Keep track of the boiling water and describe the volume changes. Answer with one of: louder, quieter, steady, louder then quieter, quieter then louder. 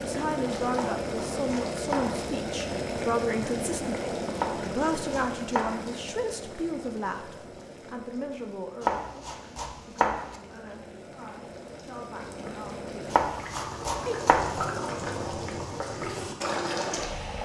quieter then louder.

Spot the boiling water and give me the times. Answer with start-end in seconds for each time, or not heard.
0.0-17.4.